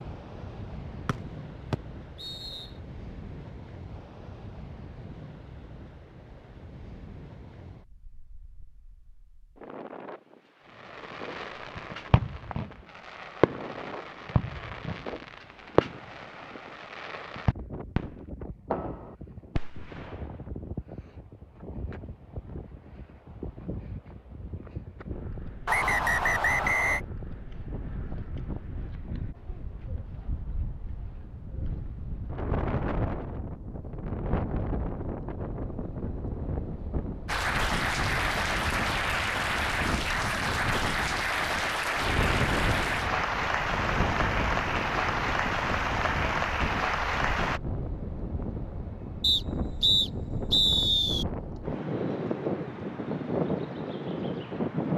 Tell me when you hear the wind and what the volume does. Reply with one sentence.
You can hear the wind from 0.0 to 54.9 s, getting louder.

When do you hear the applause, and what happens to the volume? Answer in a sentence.
You can hear the applause from 37.2 to 47.6 s, at a steady volume.